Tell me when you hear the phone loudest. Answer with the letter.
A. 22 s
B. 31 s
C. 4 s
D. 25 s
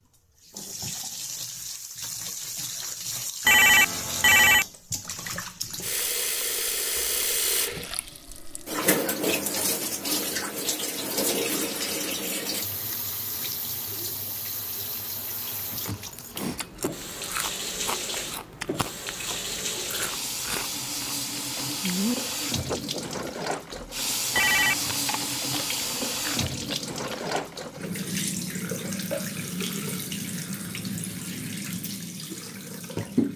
C.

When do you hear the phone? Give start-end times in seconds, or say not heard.
3.5-4.7, 24.4-24.9.